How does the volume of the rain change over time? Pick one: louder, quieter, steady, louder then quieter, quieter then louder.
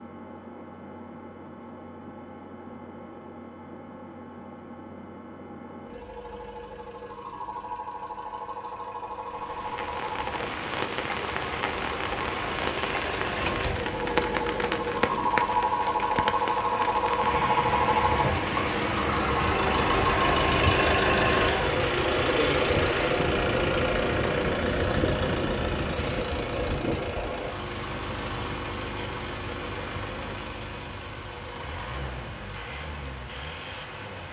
quieter.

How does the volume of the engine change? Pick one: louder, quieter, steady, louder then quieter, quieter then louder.
louder then quieter.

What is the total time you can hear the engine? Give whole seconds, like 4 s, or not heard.
34 s.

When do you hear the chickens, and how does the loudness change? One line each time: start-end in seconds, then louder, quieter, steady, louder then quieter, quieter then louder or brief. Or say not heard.
not heard.